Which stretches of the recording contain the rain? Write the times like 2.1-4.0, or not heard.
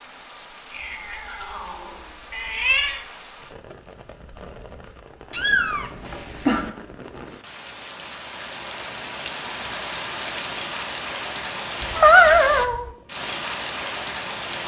0.0-14.6.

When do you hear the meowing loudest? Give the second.
12 s.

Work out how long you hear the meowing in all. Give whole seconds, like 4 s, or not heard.
5 s.